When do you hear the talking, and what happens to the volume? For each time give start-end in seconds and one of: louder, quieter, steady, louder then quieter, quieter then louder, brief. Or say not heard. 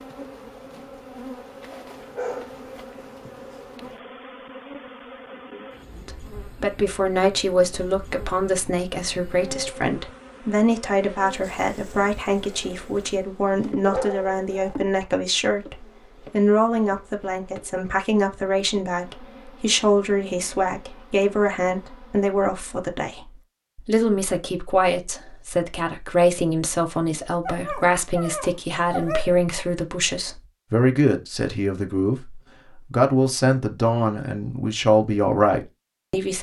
6.0-36.3 steady.